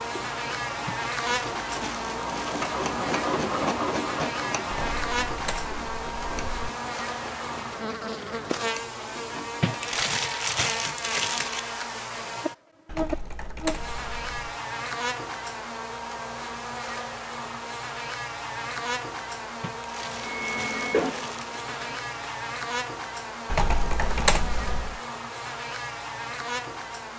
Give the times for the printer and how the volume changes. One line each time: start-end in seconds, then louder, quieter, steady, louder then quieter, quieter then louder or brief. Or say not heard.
0.0-10.1 louder then quieter
20.2-22.2 brief.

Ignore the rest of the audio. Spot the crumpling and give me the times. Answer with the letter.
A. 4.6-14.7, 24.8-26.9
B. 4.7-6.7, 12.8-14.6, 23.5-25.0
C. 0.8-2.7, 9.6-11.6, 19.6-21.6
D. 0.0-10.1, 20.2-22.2
C.